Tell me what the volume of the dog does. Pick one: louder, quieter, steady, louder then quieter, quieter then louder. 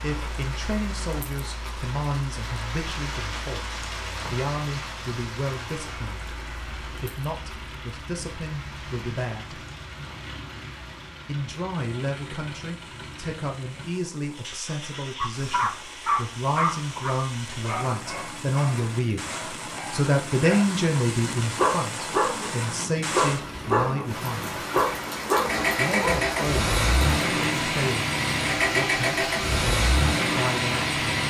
quieter then louder.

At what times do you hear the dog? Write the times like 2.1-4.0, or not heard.
15.2-26.2.